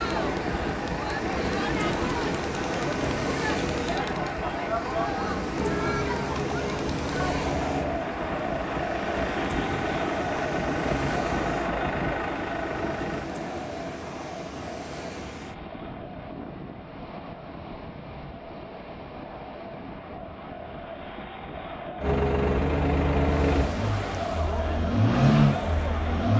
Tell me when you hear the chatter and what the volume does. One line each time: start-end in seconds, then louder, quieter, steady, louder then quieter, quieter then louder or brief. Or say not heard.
0.0-26.3 quieter then louder.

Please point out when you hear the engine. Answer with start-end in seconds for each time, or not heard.
0.0-13.3, 22.0-26.3.